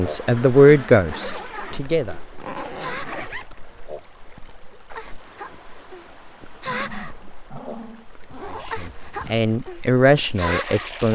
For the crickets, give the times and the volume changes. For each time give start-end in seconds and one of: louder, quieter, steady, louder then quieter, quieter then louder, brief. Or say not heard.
0.0-11.0 louder.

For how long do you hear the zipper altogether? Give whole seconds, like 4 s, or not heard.
4 s.